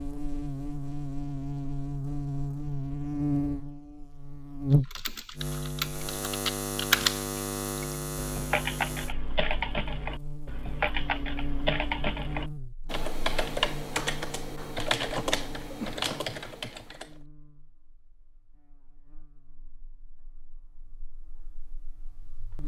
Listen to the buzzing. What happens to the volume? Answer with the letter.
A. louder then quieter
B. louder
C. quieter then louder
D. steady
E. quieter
E.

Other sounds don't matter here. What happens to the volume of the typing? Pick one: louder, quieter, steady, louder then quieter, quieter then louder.
steady.